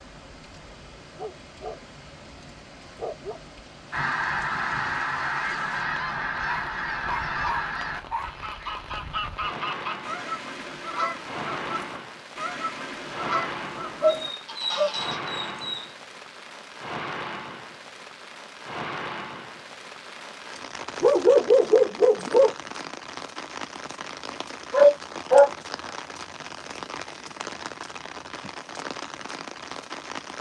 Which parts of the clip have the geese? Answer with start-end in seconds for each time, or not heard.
3.9-15.2.